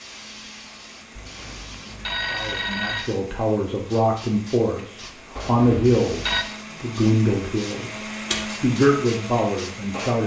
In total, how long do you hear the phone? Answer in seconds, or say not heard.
3 s.